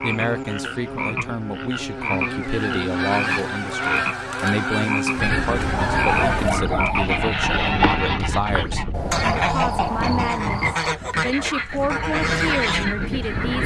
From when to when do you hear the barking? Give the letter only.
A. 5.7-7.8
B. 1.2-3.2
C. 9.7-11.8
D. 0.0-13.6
A.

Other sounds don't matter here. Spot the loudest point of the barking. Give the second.
6 s.